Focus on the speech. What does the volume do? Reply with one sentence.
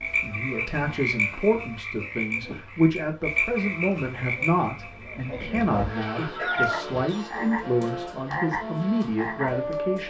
The loudness of the speech stays about the same.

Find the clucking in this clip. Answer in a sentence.
You can hear the clucking from 6.2 to 7.0 s.